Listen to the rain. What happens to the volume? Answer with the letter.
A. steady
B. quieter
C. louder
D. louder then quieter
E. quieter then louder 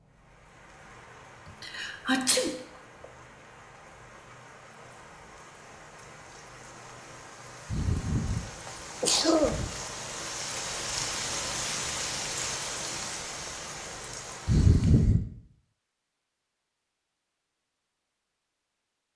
C.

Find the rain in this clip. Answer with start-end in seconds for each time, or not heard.
0.0-15.2.